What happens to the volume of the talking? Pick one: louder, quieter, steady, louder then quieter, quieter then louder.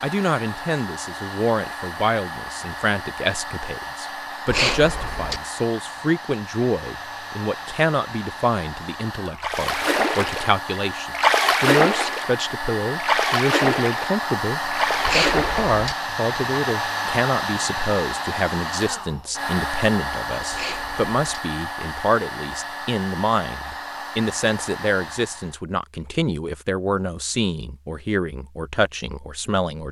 steady.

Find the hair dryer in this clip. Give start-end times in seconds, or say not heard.
0.0-25.6.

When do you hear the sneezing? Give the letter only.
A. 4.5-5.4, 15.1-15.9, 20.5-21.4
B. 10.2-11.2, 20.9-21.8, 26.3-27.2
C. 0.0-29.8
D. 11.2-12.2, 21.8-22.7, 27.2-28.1
A.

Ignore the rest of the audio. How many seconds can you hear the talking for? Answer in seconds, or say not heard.
30 s.